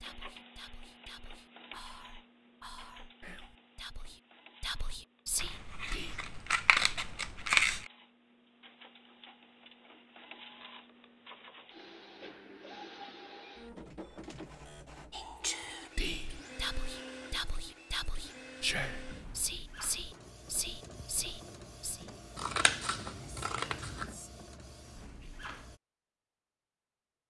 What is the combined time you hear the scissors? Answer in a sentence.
You can hear the scissors for 4 seconds altogether.